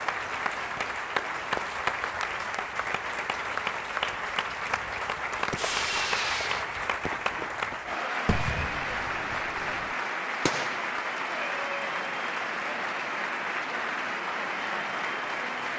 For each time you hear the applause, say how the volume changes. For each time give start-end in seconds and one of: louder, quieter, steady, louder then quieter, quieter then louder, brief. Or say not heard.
0.0-15.7 steady.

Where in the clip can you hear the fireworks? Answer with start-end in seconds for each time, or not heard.
5.5-10.9.